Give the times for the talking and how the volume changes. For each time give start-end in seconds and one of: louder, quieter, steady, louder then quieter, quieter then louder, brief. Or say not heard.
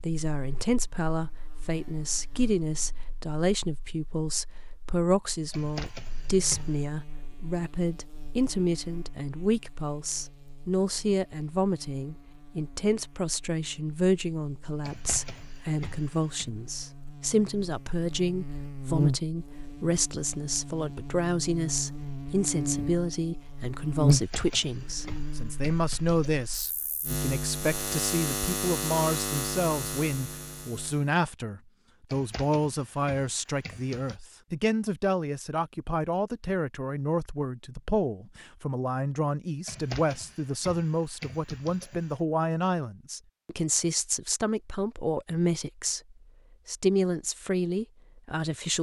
0.0-48.7 steady.